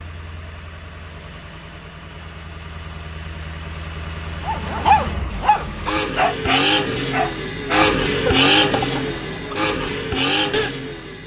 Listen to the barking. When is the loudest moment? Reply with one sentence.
The volume of the barking peaks at 5 seconds.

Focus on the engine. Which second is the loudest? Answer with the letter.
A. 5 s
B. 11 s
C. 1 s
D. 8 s
D.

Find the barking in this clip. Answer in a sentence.
The barking can be heard from 4.5 to 10.7 s.